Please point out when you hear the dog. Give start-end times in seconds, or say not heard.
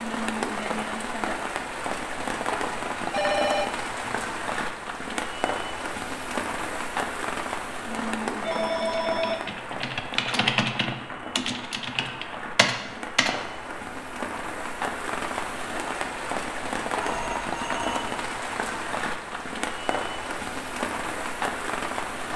not heard.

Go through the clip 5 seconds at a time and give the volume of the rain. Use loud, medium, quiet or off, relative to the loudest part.
loud, loud, medium, loud, loud.